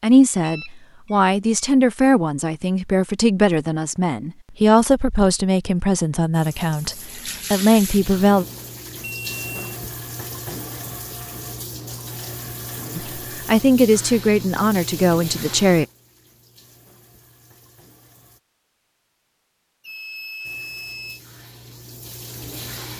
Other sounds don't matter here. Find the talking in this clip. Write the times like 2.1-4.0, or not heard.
0.0-8.4, 12.9-15.8.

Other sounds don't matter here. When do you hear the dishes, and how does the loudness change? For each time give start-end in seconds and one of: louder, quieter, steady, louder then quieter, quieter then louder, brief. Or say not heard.
not heard.